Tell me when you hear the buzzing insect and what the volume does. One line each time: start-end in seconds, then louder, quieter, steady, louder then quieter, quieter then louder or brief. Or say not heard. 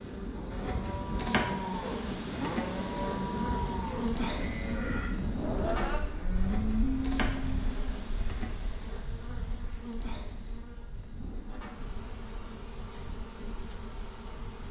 0.0-14.6 quieter.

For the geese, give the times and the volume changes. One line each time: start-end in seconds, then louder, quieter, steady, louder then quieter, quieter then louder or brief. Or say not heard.
not heard.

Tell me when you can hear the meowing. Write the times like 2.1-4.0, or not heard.
not heard.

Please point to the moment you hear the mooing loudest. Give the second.
7 s.